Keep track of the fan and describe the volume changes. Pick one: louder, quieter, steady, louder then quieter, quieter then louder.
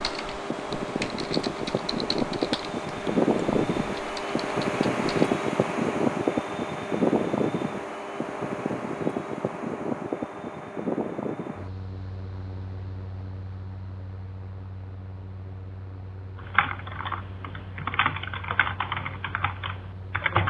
quieter.